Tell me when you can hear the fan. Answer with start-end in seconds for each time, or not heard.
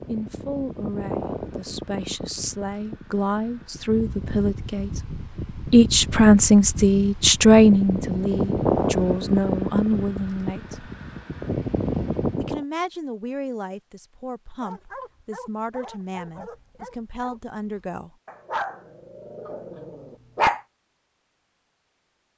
0.0-12.6.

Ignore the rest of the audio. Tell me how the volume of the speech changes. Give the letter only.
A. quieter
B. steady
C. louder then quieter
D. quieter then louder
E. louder
C.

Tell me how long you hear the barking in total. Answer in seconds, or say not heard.
6 s.